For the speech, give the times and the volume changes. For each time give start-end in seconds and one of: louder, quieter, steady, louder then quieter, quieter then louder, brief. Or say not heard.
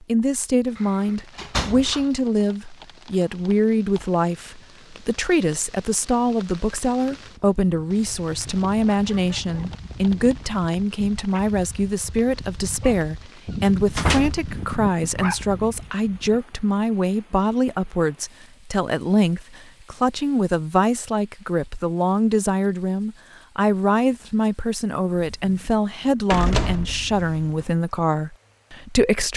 0.0-29.3 steady.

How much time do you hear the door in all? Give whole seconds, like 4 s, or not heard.
4 s.